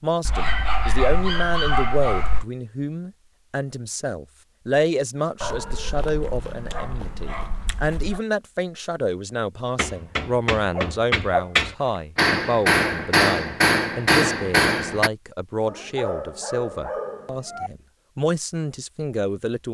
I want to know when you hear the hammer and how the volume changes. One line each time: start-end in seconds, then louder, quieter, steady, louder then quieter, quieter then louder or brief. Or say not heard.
9.8-15.1 louder.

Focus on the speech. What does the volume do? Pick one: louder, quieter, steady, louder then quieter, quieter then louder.
steady.